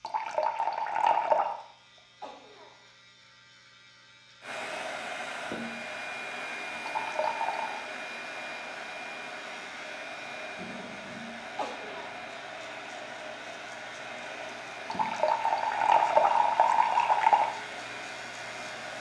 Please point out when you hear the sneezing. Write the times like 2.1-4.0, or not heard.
1.9-2.9, 11.6-12.2.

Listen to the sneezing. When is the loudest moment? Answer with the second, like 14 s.
12 s.